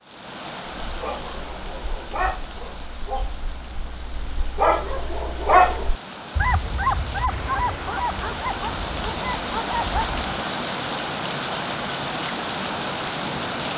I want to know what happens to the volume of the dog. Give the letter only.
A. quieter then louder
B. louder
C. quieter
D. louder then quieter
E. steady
D.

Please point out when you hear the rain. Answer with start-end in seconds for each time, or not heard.
0.0-13.7.